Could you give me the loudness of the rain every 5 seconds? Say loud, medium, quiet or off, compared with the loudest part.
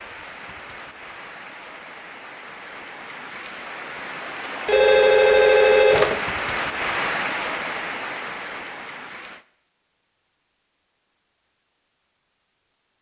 medium, loud, off.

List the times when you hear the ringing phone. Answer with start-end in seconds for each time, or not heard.
4.7-6.2.